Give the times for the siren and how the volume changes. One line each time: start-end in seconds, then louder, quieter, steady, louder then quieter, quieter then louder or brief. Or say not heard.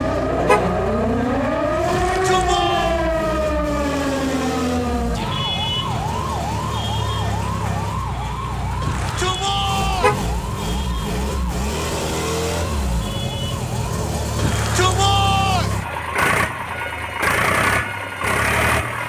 0.0-19.0 quieter.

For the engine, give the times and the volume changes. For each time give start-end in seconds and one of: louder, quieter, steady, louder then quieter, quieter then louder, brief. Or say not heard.
0.0-19.0 louder.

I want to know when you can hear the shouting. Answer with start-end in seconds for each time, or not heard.
1.9-3.0, 8.8-10.2, 14.3-15.8.